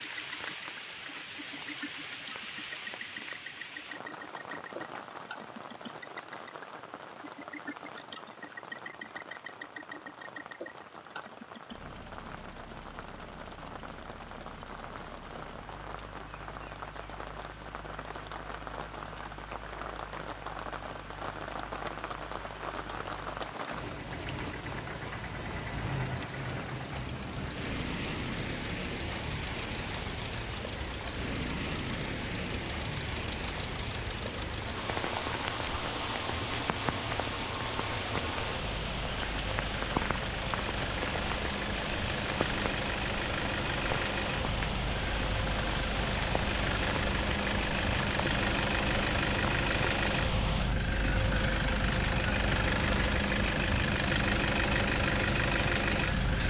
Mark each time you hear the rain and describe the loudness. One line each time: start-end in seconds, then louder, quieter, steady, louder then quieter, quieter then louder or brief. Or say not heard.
0.0-56.4 louder.